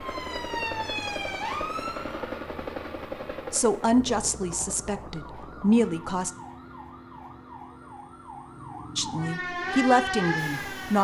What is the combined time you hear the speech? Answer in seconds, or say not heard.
5 s.